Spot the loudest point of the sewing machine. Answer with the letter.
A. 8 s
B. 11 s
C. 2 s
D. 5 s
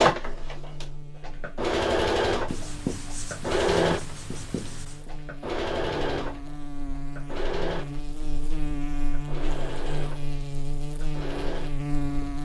C.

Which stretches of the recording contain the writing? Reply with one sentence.
The writing can be heard from 2.5 to 5.1 s.